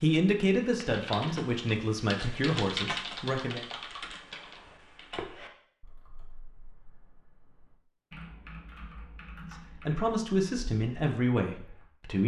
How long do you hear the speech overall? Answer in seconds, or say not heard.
6 s.